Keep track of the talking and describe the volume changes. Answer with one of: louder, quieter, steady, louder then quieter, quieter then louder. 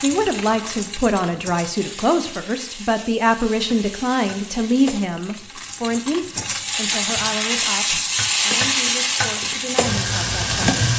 quieter.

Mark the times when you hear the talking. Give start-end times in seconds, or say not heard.
0.0-10.7.